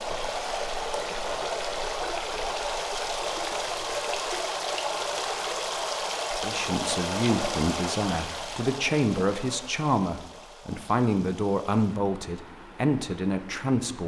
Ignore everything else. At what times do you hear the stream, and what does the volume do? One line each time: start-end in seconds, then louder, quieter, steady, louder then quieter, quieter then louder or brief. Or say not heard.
0.0-14.0 quieter.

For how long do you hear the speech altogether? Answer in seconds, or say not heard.
8 s.